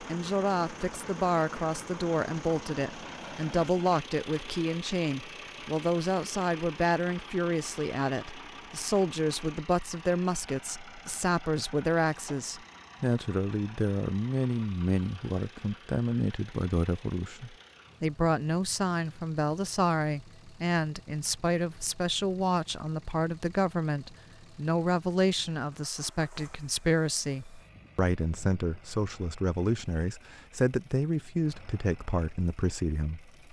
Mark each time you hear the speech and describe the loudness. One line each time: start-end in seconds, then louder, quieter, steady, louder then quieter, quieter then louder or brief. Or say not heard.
0.0-33.3 steady.